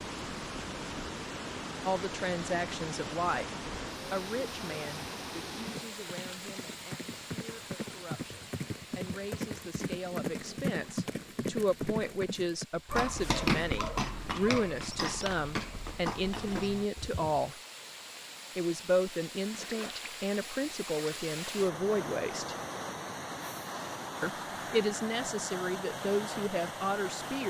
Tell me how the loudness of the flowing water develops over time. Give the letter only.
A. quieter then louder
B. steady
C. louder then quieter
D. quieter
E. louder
A.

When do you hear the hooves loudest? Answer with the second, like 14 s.
13 s.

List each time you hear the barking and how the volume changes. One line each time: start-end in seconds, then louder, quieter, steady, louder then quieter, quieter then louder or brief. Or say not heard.
not heard.